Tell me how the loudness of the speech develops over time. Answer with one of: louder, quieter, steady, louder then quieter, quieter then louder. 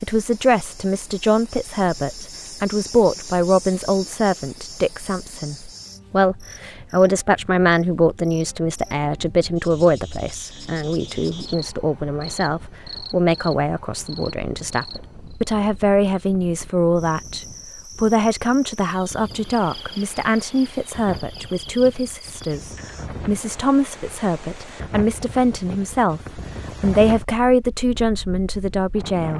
steady.